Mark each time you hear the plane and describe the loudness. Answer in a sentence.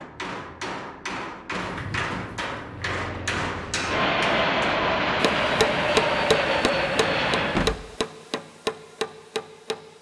The plane can be heard from 2.6 to 7.8 s, getting louder.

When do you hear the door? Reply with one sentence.
You can hear the door from 1.5 to 3.0 s and from 7.5 to 8.0 s.